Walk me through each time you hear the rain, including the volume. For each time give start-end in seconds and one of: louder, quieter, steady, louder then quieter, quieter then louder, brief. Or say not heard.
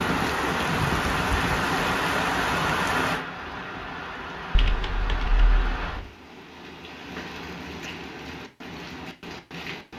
0.0-9.9 quieter.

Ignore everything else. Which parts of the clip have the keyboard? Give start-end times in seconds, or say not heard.
4.5-6.0.